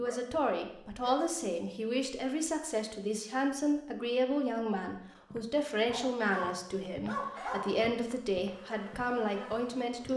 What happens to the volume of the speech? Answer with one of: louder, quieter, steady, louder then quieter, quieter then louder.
steady.